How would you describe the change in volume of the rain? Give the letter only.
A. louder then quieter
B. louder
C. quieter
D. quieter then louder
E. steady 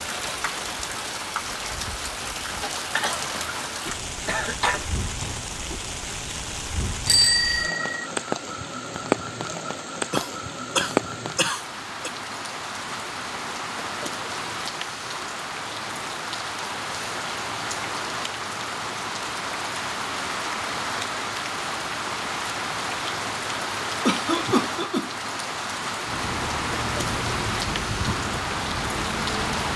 E.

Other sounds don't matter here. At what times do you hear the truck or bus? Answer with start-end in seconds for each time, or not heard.
26.1-29.7.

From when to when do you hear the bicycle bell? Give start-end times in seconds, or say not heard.
7.0-8.1.